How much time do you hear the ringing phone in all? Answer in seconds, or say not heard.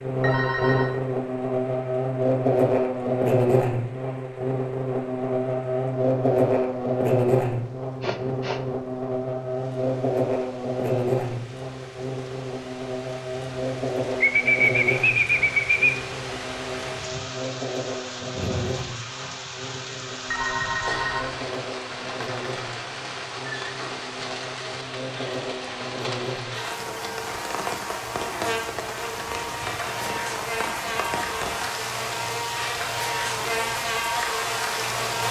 2 s.